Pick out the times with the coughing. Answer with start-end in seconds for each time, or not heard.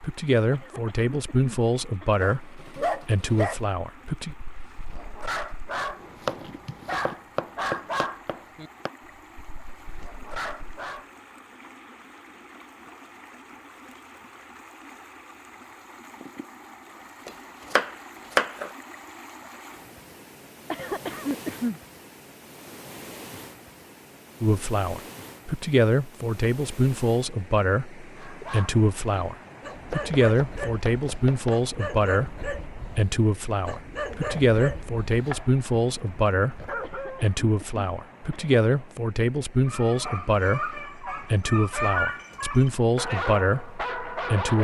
0.5-2.2, 20.7-21.8, 36.8-38.5.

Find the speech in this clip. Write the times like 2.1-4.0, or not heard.
0.0-4.3, 24.4-44.5.